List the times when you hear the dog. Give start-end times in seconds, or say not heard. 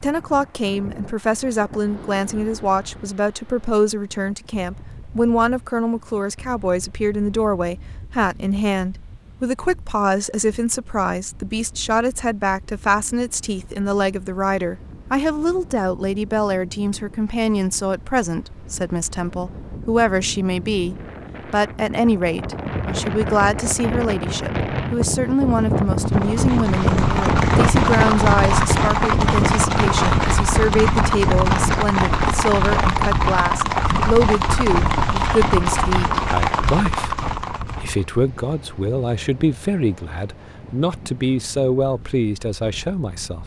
not heard.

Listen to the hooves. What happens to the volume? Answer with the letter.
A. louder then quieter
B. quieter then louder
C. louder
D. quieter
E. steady
E.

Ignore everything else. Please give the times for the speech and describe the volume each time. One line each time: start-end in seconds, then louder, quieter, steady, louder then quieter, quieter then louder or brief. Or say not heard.
0.0-43.4 steady.